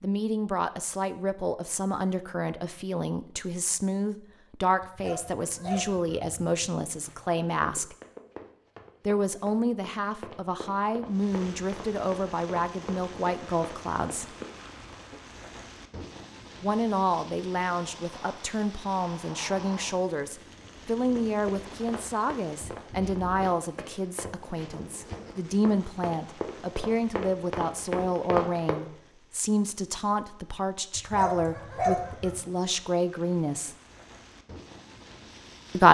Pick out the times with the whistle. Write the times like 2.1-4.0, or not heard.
not heard.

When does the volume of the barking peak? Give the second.
32 s.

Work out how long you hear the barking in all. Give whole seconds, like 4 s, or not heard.
3 s.